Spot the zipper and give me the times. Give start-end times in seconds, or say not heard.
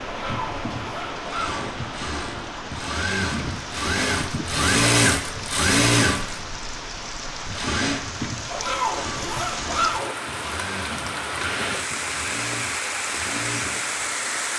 0.1-1.6, 8.4-10.2.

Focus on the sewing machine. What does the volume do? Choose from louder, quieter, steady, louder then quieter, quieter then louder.
louder then quieter.